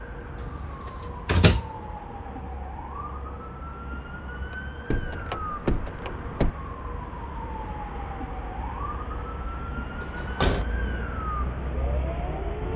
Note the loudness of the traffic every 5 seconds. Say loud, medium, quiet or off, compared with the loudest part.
medium, medium, loud.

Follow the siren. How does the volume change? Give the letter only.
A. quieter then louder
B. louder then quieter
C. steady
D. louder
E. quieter
C.